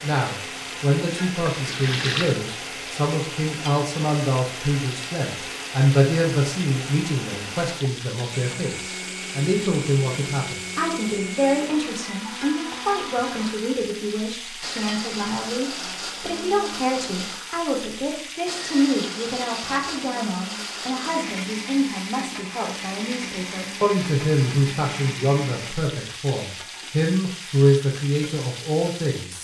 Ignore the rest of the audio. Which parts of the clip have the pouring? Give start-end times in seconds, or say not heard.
1.5-2.4.